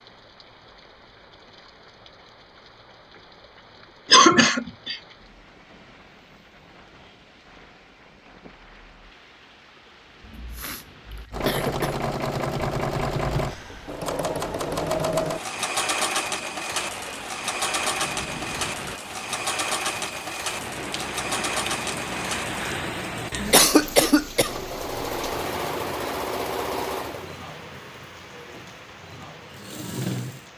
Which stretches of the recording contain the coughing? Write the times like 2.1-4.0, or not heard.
4.1-5.0, 10.2-11.9, 23.5-24.5.